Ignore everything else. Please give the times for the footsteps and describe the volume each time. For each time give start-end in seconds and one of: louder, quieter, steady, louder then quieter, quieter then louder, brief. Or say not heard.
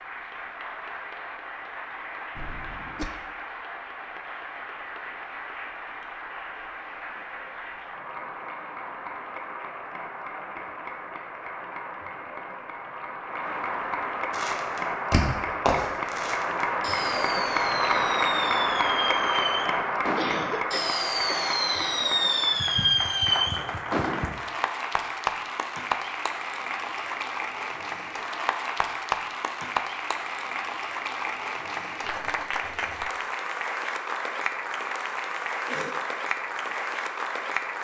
not heard.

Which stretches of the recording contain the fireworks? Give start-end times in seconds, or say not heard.
14.3-24.4.